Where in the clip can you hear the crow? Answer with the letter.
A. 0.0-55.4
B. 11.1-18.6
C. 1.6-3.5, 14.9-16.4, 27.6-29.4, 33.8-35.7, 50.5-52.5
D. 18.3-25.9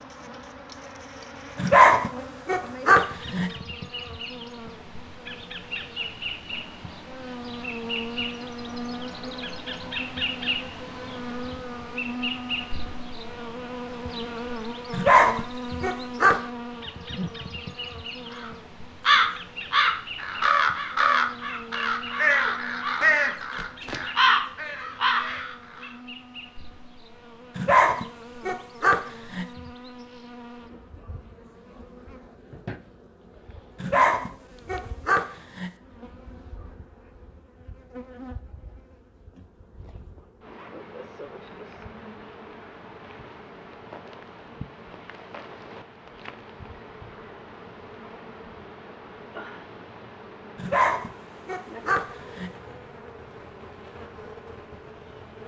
D.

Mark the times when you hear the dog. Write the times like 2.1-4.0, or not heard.
1.6-3.5, 14.9-16.4, 27.6-29.4, 33.8-35.7, 50.5-52.5.